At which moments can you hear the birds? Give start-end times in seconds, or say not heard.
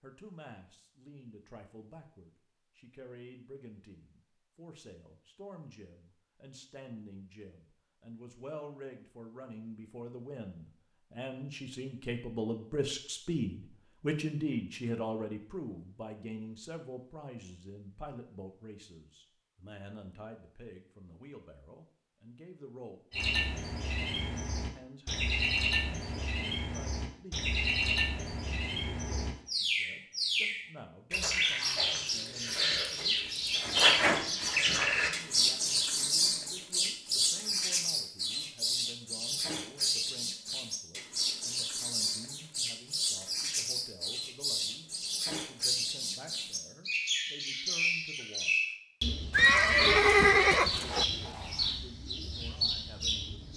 23.1-53.5.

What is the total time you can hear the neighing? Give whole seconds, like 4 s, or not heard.
2 s.